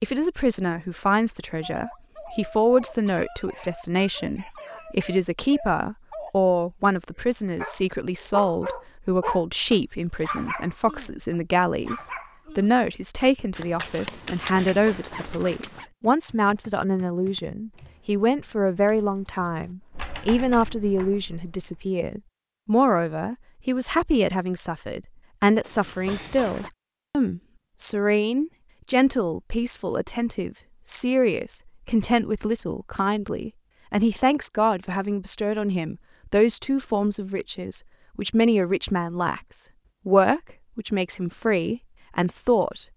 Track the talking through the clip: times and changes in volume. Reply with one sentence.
The talking can be heard from 0.0 to 42.9 s, at a steady volume.